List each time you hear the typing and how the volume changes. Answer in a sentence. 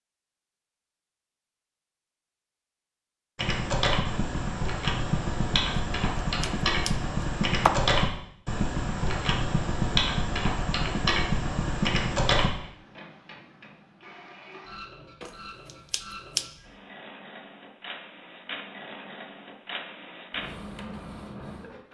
You can hear the typing from 3.4 to 12.5 s, at a steady volume.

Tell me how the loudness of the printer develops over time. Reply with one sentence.
The loudness of the printer goes up.